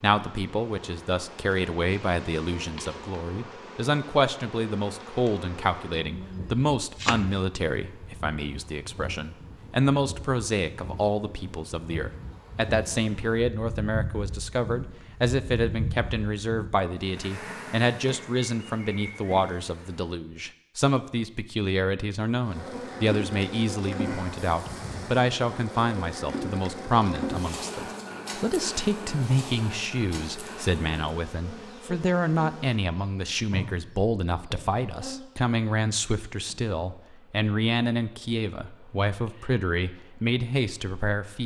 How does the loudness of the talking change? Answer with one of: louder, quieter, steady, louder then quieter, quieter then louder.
steady.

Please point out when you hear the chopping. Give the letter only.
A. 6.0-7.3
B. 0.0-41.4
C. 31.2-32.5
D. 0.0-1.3
A.